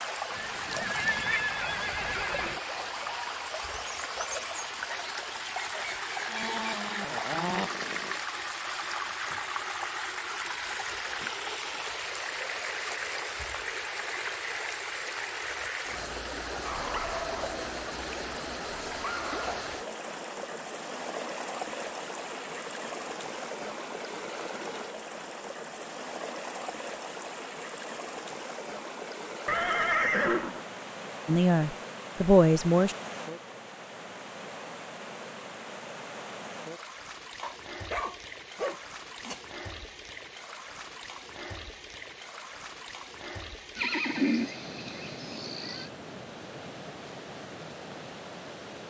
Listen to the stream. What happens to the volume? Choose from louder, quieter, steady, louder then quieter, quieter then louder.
quieter.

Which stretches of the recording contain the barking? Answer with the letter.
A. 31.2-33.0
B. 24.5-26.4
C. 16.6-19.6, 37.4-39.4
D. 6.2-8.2
C.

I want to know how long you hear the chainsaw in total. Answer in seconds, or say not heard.
2 s.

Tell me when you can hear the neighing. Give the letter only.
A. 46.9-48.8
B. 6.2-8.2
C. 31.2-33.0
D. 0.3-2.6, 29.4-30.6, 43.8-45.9
D.